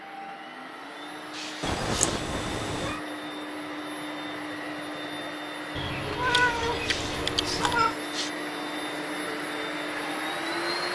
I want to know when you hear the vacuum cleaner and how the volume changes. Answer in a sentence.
The vacuum cleaner can be heard from 0.0 to 10.9 s, getting louder.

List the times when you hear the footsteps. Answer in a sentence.
You can't hear the footsteps here.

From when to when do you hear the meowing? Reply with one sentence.
The meowing can be heard from 1.6 to 3.0 s and from 5.8 to 8.0 s.